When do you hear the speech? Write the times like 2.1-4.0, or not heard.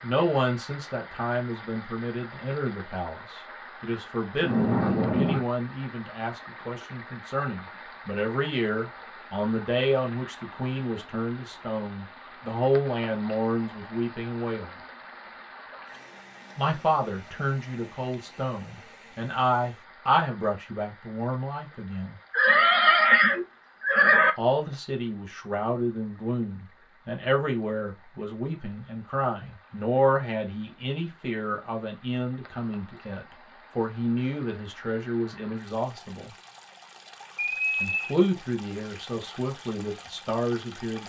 0.0-14.7, 16.6-22.1, 24.4-36.3, 37.8-41.0.